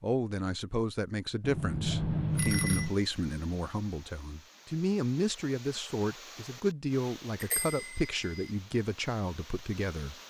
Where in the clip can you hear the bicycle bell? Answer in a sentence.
The bicycle bell can be heard from 1.4 to 3.0 s and from 7.4 to 8.5 s.